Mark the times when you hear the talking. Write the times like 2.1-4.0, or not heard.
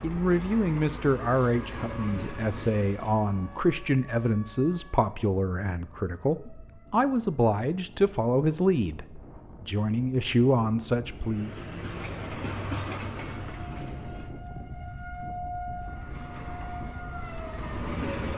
0.0-11.5.